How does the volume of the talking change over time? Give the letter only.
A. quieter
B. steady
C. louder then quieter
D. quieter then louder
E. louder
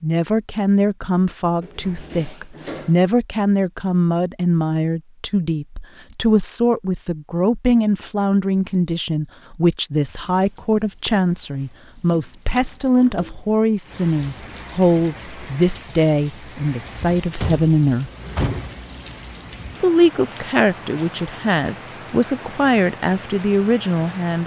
B.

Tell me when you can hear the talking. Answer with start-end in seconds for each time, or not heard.
0.0-18.1, 19.8-24.4.